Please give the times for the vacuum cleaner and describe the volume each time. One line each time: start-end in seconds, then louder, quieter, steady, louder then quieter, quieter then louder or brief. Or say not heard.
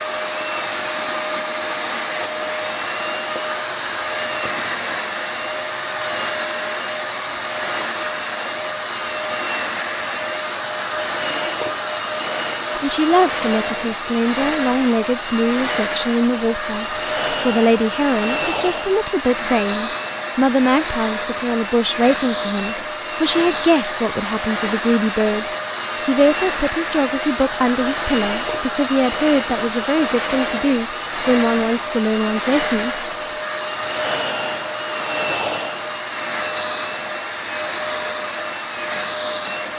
0.0-39.7 steady.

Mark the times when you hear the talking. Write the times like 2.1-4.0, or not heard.
12.8-25.4, 26.1-33.0.